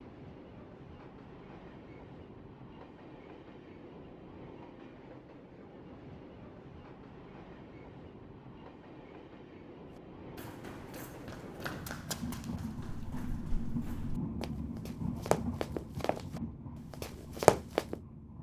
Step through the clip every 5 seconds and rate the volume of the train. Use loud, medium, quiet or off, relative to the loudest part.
medium, medium, loud, loud.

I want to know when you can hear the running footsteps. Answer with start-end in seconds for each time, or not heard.
10.3-17.9.